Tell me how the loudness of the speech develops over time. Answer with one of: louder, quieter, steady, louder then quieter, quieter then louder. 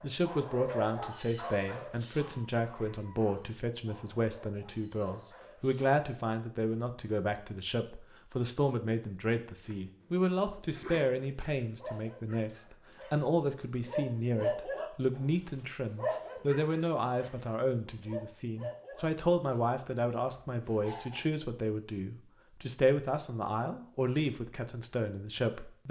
steady.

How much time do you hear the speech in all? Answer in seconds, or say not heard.
26 s.